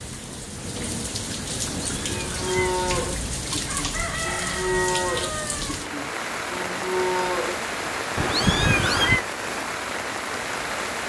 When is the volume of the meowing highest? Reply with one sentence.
The volume of the meowing peaks at 9 seconds.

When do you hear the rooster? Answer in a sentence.
The rooster can be heard from 3.6 to 5.8 s.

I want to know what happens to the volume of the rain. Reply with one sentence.
The loudness of the rain stays about the same.